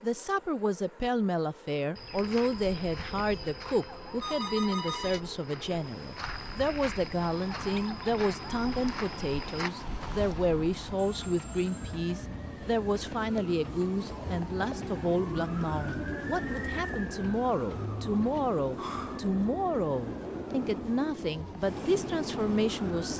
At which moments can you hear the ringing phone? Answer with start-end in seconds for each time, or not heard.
4.2-5.2, 10.9-12.0, 18.8-19.4.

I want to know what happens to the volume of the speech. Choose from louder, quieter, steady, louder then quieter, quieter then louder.
steady.